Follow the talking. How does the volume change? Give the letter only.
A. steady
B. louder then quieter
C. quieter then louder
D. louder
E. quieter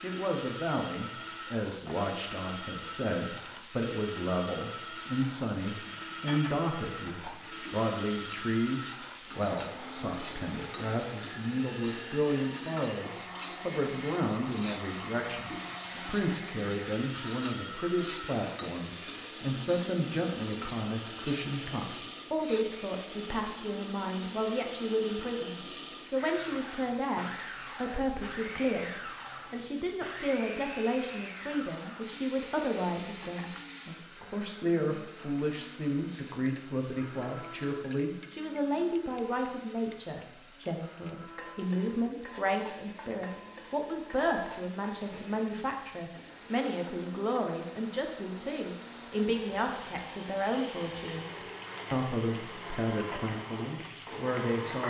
A.